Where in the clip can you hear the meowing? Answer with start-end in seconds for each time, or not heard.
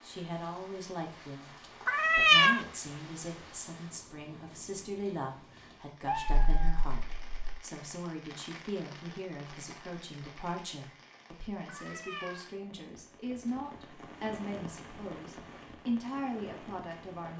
1.9-2.6, 6.0-7.6, 11.7-12.4.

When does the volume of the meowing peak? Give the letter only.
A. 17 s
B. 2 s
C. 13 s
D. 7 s
B.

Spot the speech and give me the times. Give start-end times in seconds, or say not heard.
0.0-1.5, 2.1-17.3.